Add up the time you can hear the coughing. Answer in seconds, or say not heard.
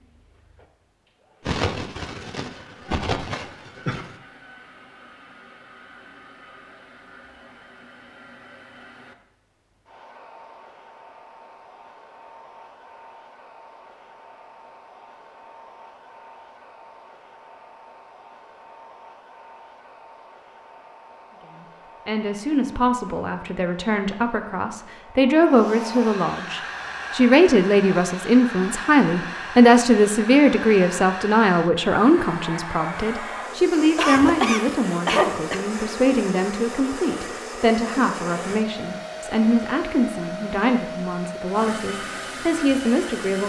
4 s.